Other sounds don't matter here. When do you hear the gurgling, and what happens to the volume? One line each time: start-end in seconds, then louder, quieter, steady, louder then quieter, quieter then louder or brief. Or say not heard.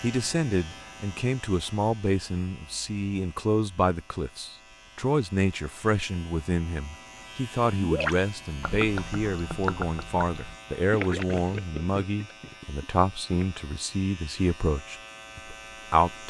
7.8-13.4 quieter.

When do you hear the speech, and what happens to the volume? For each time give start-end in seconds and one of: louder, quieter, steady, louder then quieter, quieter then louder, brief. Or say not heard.
0.0-16.2 steady.